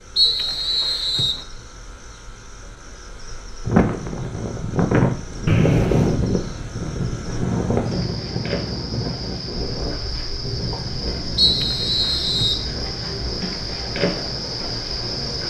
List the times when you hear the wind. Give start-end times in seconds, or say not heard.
3.6-15.4.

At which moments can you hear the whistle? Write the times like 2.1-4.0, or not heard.
0.1-1.4, 5.5-6.2, 11.3-12.7.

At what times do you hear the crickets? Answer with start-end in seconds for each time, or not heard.
0.0-15.4.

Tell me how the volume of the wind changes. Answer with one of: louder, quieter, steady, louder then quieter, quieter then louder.
quieter.